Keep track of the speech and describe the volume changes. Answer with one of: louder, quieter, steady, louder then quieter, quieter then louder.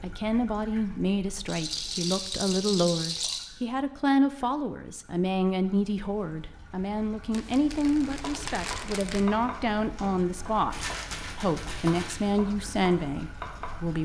steady.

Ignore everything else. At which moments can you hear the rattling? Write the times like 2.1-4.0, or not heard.
1.4-3.5, 10.7-12.3.